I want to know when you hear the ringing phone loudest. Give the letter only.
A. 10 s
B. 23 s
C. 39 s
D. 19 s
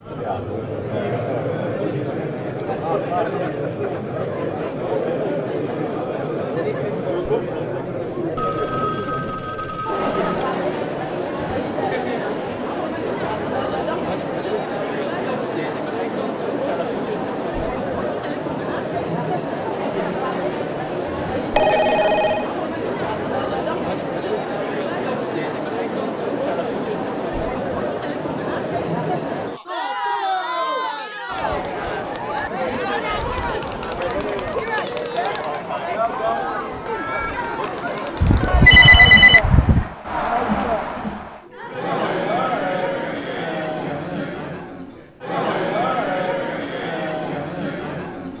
C.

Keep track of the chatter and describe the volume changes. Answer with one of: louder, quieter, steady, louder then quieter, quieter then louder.
steady.